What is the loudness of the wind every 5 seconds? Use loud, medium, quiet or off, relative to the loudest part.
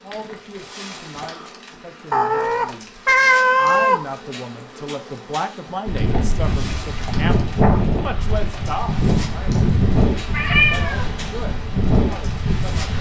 off, loud, loud.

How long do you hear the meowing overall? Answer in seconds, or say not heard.
3 s.